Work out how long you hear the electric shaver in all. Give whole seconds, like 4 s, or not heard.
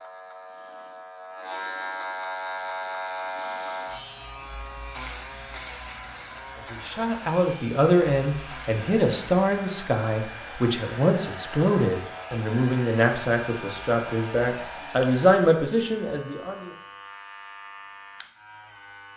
19 s.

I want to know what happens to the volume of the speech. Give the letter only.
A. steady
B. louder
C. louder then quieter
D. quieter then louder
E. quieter
A.